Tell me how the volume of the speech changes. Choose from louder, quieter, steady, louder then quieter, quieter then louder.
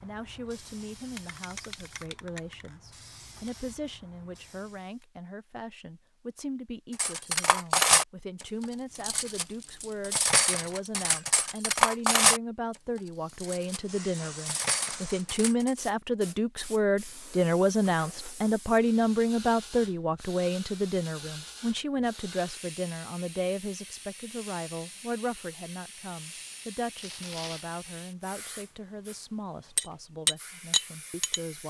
louder then quieter.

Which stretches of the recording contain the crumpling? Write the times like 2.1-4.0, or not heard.
26.9-27.6.